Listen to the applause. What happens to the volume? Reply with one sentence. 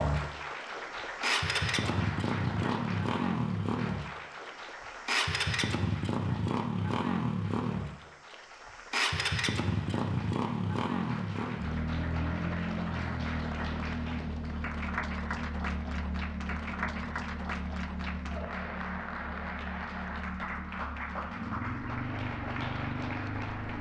The volume of the applause goes down, then up.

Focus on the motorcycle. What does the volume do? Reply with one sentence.
The volume of the motorcycle goes down.